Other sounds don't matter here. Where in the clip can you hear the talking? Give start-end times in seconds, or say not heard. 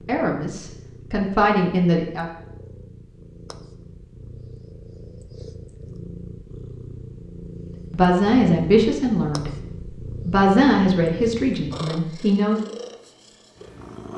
0.0-2.2, 7.9-9.5, 10.2-12.6.